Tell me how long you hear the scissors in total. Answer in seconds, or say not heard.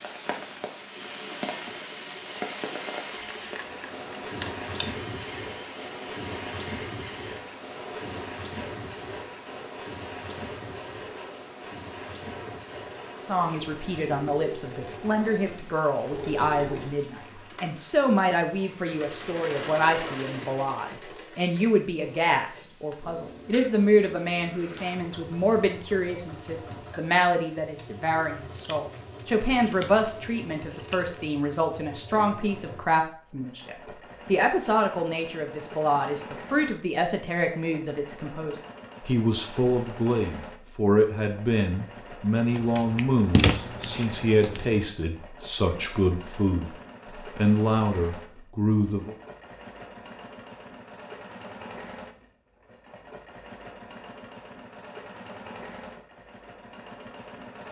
7 s.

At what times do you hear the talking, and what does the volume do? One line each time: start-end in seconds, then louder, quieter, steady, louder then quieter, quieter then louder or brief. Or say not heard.
13.2-49.1 steady.